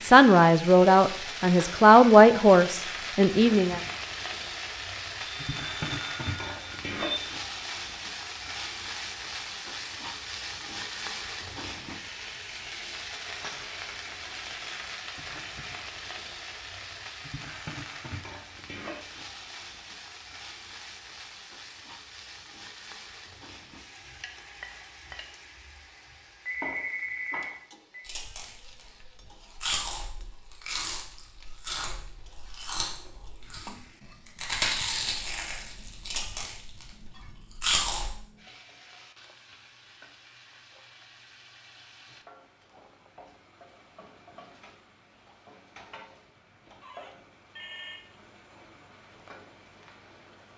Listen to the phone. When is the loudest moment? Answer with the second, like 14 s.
27 s.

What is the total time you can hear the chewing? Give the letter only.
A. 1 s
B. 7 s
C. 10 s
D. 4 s
C.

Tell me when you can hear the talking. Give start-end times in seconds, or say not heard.
0.0-3.8.